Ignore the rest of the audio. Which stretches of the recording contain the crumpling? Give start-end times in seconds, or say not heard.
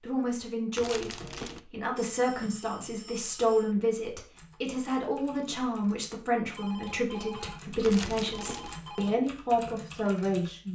0.8-1.6, 7.8-8.8.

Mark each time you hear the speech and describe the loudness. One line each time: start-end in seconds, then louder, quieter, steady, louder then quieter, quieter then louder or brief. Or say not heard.
0.0-10.7 steady.